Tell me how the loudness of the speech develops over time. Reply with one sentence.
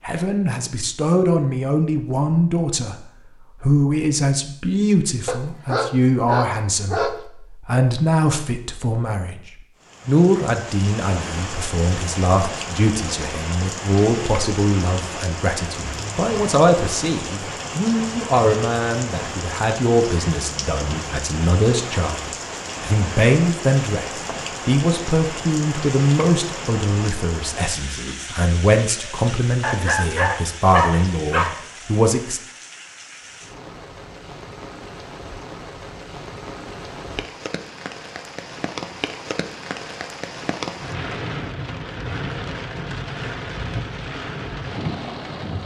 The loudness of the speech stays about the same.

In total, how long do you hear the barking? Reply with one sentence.
You can hear the barking for 4 seconds altogether.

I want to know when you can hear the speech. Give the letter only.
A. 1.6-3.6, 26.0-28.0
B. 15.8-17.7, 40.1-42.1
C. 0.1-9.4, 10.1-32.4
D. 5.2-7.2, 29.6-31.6
C.